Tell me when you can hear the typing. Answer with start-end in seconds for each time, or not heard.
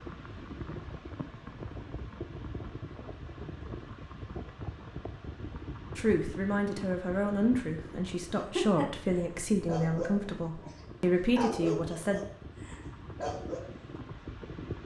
not heard.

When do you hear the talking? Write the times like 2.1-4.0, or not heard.
6.0-12.2.